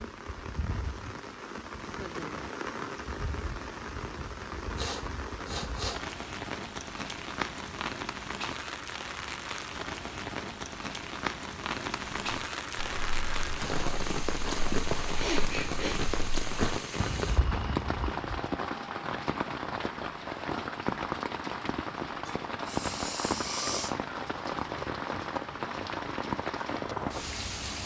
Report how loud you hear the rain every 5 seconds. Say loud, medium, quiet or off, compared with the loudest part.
medium, loud, loud, loud, loud, loud.